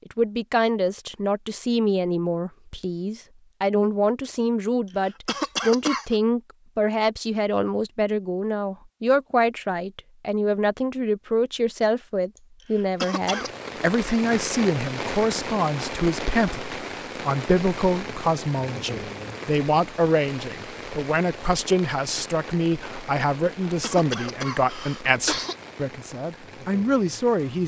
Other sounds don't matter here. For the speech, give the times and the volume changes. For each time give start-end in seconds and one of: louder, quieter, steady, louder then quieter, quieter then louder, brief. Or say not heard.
0.1-27.6 steady.